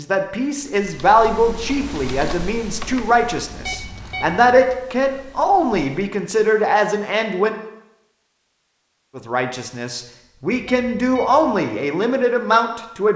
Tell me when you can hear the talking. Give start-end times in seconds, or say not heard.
0.0-7.5, 9.2-13.1.